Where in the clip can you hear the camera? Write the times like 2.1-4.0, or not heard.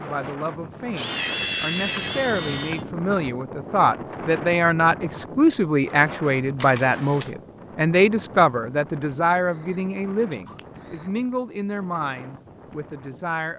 0.9-2.9, 6.6-7.3, 9.3-11.1.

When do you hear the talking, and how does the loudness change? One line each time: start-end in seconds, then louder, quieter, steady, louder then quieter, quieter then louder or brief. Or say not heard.
0.0-13.5 louder then quieter.